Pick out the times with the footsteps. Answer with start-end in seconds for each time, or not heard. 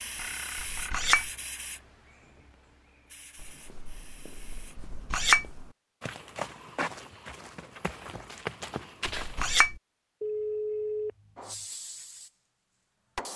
3.4-9.6.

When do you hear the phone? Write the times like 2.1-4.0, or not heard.
0.1-1.2, 10.2-11.7.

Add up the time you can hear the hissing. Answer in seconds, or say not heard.
7 s.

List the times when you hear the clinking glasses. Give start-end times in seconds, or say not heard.
0.6-1.3, 4.8-5.5, 9.2-9.8.